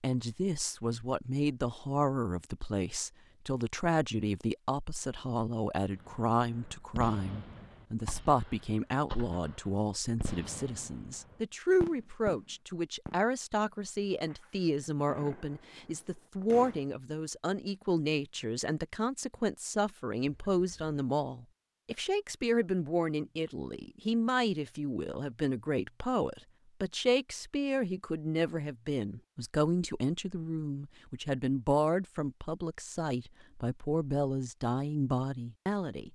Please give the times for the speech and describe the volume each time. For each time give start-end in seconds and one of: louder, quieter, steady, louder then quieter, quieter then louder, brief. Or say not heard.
0.0-36.0 steady.